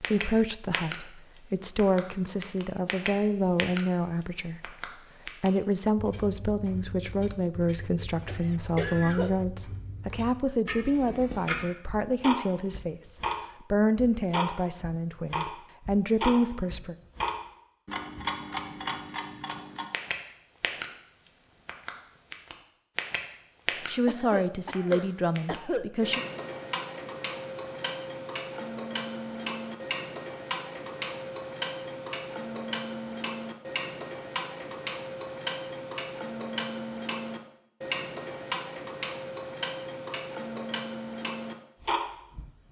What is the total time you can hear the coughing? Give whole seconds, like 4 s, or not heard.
3 s.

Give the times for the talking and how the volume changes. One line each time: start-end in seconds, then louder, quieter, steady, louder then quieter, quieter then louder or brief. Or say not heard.
0.0-16.9 steady
23.8-26.2 brief.